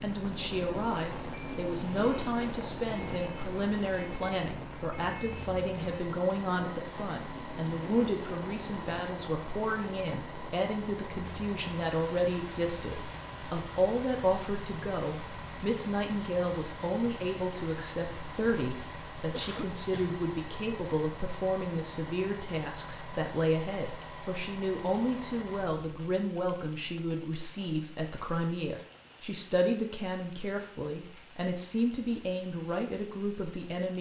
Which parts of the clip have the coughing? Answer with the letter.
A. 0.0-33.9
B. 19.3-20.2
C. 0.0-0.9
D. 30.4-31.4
B.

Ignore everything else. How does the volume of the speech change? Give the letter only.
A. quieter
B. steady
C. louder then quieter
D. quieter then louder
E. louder
B.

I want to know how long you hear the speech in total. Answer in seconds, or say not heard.
34 s.